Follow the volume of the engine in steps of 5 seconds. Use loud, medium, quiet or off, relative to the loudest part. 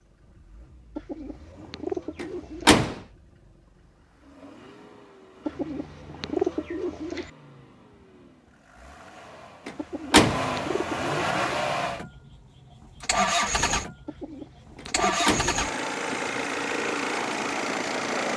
quiet, quiet, loud, loud.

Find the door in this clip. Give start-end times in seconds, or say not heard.
2.1-3.0, 9.7-10.4, 14.8-16.6.